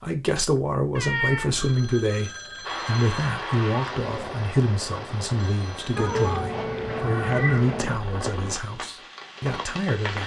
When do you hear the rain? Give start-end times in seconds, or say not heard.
2.6-10.2.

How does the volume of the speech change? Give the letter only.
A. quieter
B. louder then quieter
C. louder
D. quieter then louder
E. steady
A.